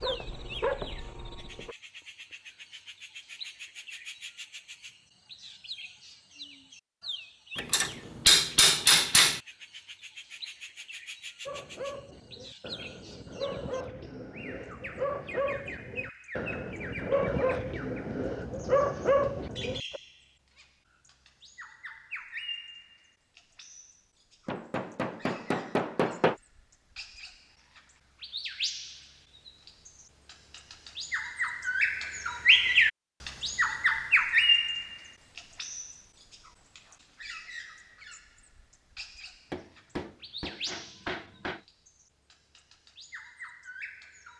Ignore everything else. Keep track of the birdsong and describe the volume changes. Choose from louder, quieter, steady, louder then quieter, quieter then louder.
louder then quieter.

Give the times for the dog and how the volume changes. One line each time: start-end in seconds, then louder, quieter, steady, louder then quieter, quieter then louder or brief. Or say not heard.
0.0-1.8 brief
11.4-20.0 louder.